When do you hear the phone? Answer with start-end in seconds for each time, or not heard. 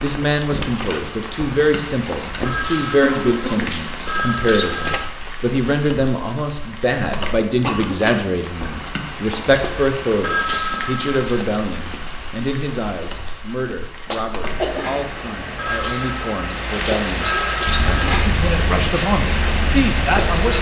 2.4-5.2, 10.2-11.5, 15.6-18.1.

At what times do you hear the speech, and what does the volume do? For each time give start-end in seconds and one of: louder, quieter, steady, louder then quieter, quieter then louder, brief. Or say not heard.
0.0-17.3 quieter
18.2-20.5 brief.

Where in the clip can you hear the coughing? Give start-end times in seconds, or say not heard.
3.0-3.9, 7.2-8.2, 14.1-15.0.